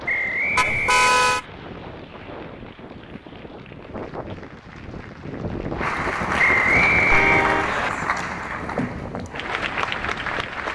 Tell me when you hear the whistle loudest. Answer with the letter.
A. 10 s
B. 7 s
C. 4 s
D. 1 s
B.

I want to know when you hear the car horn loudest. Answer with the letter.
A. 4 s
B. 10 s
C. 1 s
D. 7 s
C.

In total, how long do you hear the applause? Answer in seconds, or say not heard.
11 s.